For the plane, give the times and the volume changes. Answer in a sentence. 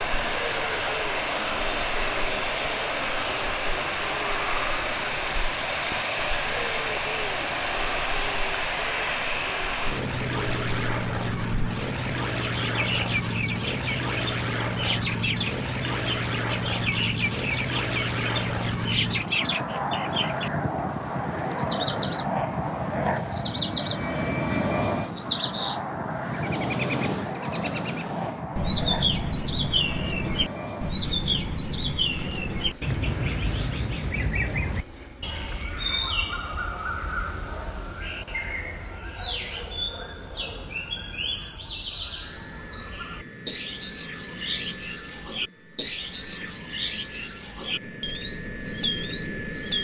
You can hear the plane from 0.0 to 49.7 s, getting quieter.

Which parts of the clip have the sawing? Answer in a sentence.
You can't hear the sawing here.